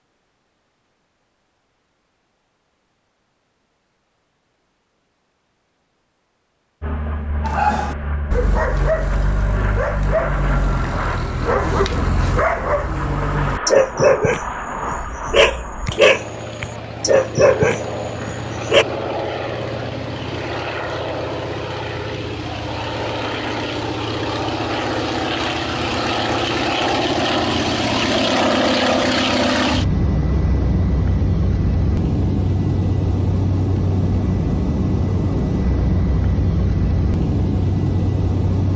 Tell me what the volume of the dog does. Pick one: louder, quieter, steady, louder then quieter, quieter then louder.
louder.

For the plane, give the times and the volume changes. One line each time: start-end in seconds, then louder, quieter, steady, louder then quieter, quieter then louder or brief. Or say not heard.
6.8-38.7 louder.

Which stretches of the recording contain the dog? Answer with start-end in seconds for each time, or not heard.
7.4-18.9.